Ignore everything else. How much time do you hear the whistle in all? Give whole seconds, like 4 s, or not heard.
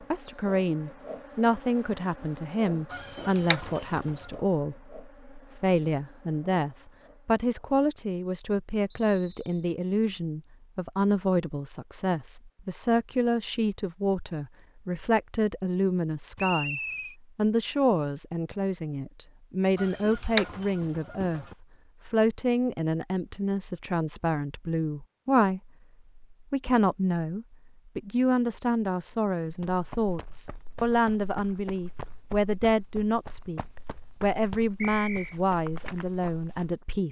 2 s.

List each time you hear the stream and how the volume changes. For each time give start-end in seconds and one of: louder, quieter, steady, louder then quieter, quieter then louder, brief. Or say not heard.
not heard.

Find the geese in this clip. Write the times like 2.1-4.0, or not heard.
2.9-4.3, 19.8-21.6.